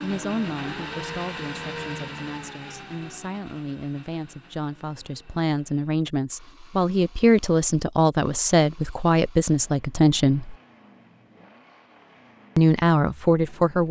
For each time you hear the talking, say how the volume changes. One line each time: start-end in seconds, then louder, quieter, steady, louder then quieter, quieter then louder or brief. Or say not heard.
0.0-10.6 louder
12.6-13.8 brief.